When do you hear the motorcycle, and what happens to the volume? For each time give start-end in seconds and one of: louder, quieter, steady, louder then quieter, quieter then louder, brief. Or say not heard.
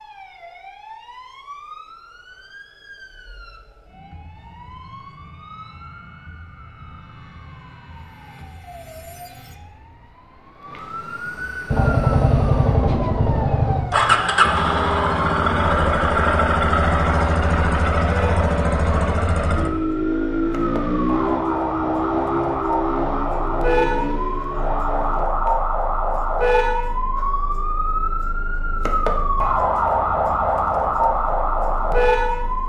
11.7-25.2 quieter.